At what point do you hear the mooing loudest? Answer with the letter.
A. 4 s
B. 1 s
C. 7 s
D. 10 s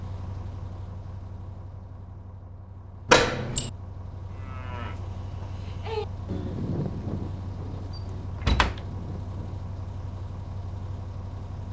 C.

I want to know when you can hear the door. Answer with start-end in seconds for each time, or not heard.
3.0-3.7, 8.3-8.8.